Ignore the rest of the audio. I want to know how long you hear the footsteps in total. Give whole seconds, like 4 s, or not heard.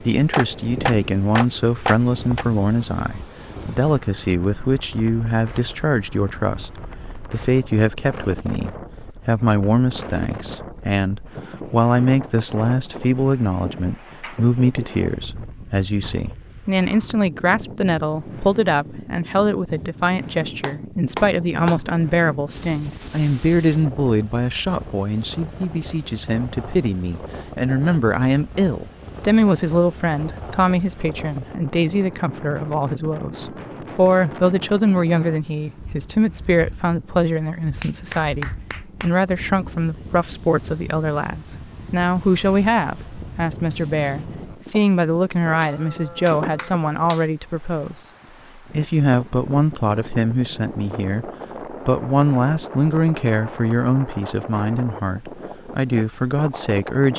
not heard.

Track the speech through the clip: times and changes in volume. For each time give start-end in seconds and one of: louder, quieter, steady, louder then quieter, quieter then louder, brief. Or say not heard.
0.0-57.1 steady.